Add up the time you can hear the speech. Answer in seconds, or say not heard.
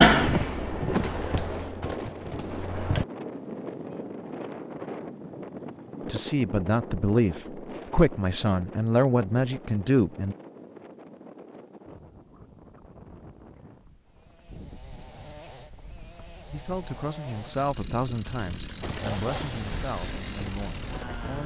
9 s.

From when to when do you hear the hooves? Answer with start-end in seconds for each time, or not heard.
0.0-3.0, 18.8-21.2.